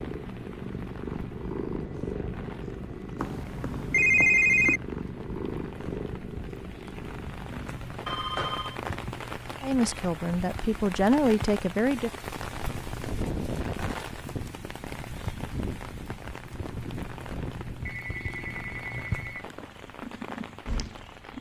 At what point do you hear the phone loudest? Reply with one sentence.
The loudest moment of the phone is at 4 seconds.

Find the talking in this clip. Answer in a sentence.
The talking can be heard from 9.6 to 12.1 s.